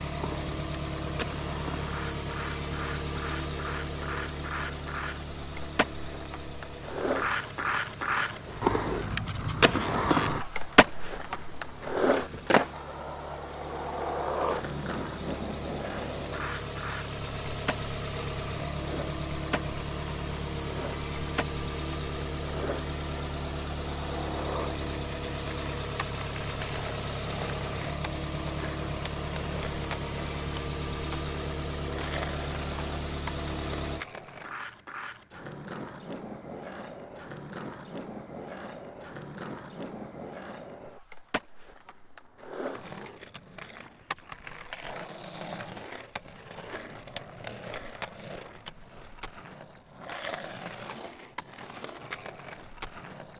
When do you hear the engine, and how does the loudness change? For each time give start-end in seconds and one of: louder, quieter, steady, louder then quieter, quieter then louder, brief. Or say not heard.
0.0-34.0 quieter then louder.